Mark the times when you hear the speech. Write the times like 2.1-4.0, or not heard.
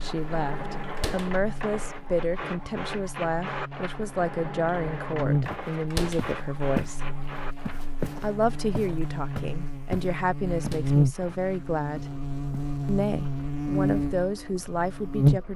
0.0-7.0, 8.2-12.1, 12.8-15.5.